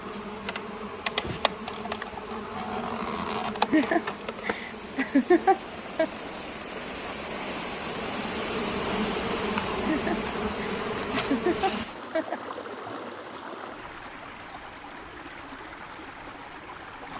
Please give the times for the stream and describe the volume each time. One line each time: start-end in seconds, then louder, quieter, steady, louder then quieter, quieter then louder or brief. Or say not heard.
0.0-17.1 louder then quieter.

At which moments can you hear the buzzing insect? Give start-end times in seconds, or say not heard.
0.0-11.8.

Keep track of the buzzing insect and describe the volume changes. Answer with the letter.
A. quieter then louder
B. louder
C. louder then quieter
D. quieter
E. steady
A.